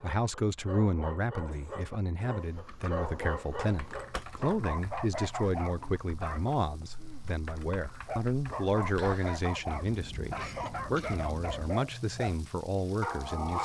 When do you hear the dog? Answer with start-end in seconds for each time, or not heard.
0.0-6.5, 8.1-12.3, 13.0-13.6.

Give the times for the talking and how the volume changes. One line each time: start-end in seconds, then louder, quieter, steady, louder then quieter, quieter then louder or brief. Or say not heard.
0.0-13.6 steady.